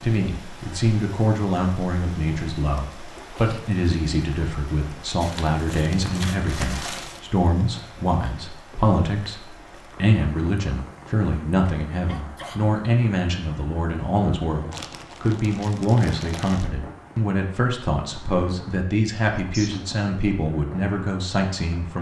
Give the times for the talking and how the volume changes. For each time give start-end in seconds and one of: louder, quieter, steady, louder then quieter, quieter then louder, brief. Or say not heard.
0.0-21.9 steady.